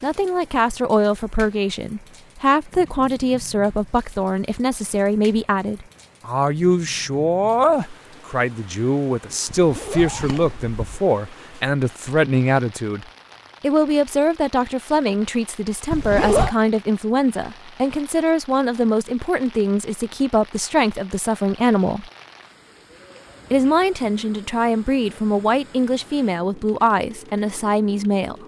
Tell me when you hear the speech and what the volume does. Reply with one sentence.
You can hear the speech from 0.0 to 22.1 s, at a steady volume; and from 23.5 to 28.4 s, at a steady volume.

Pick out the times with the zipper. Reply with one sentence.
You can hear the zipper from 9.4 to 11.0 s and from 15.9 to 16.6 s.